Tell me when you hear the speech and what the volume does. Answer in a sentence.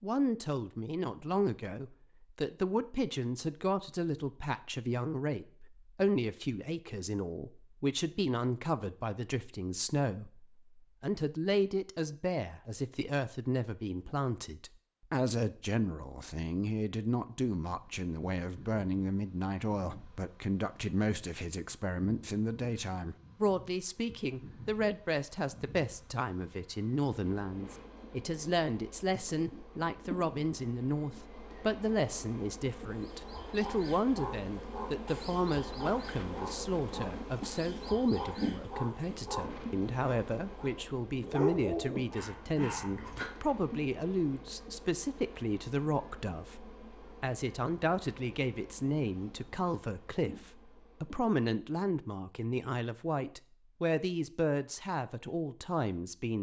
The speech can be heard from 0.0 to 56.3 s, at a steady volume.